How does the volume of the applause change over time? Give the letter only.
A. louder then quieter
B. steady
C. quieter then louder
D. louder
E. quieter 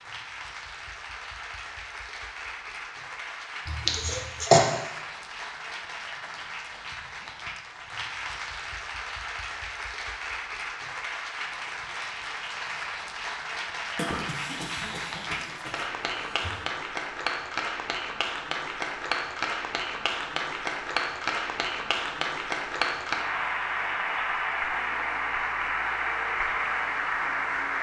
D.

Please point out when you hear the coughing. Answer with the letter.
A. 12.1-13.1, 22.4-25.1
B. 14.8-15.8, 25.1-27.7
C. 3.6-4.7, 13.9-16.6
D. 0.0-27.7
C.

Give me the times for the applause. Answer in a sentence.
You can hear the applause from 0.0 to 27.7 s.